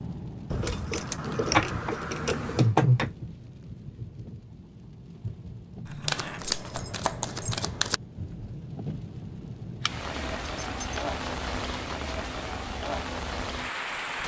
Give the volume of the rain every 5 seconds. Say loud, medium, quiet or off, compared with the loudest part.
medium, medium, loud.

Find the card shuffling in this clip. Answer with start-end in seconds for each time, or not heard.
0.7-3.1, 6.0-8.0, 10.2-12.6.